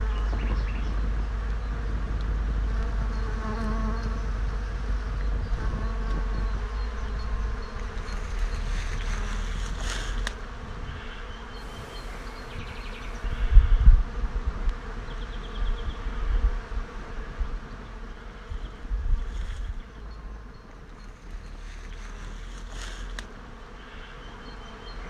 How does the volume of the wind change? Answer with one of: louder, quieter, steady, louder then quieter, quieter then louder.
quieter.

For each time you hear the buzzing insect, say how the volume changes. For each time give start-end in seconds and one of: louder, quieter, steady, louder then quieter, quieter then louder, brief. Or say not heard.
0.0-25.0 quieter.